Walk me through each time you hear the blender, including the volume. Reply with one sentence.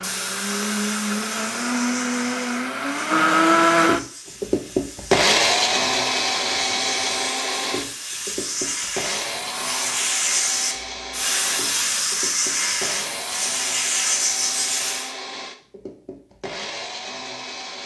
The blender can be heard from 0.0 to 17.8 s, getting quieter.